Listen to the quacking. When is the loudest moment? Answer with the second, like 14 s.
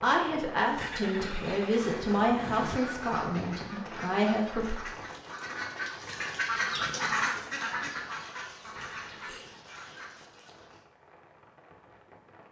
7 s.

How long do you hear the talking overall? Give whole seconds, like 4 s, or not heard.
5 s.